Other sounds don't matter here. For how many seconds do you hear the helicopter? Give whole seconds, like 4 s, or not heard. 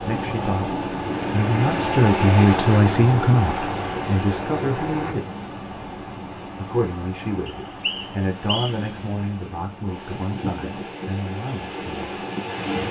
5 s.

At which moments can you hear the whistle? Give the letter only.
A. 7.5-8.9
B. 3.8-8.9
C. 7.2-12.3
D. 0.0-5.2
A.